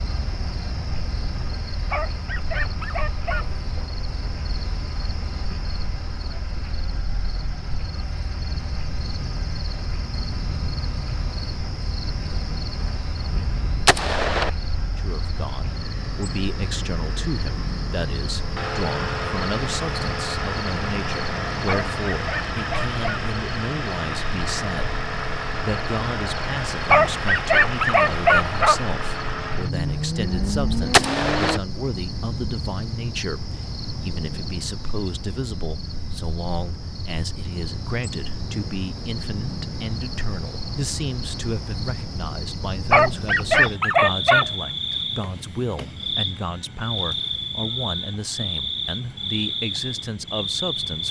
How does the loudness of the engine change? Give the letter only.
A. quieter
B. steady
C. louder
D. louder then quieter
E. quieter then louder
C.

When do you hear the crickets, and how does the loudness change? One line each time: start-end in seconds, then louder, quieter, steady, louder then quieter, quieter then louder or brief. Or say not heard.
0.0-51.0 louder.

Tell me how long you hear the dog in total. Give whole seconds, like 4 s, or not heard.
7 s.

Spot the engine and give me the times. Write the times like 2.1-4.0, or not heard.
0.0-31.6.